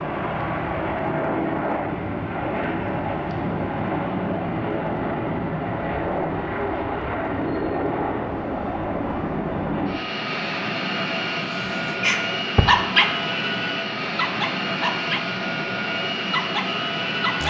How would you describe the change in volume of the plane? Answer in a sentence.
The volume of the plane stays about the same.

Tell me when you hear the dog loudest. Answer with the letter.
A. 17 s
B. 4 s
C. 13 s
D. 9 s
C.